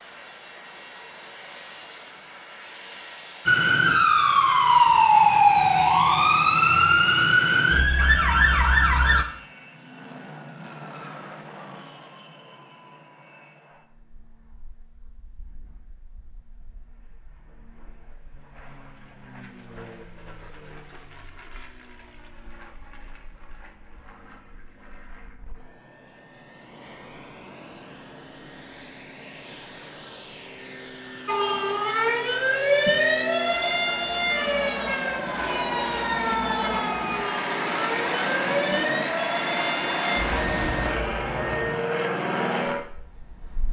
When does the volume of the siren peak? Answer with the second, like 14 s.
5 s.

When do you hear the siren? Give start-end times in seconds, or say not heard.
3.5-9.2, 31.2-41.8.